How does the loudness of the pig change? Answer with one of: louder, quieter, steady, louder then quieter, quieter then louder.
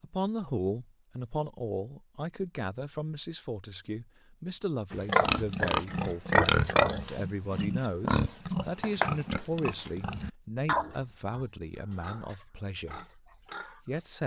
quieter.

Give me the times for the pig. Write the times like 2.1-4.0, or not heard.
4.9-14.2.